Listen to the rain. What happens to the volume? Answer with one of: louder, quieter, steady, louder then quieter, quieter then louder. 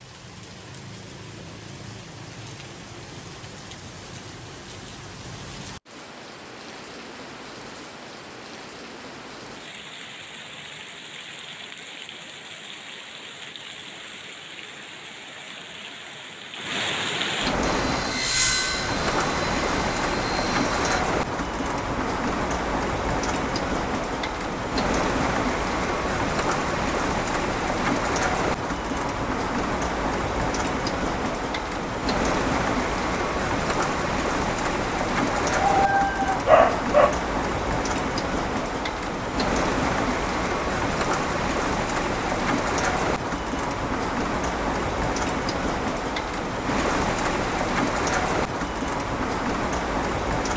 louder.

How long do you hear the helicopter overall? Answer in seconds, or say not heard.
3 s.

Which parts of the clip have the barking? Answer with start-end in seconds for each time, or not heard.
35.5-37.1.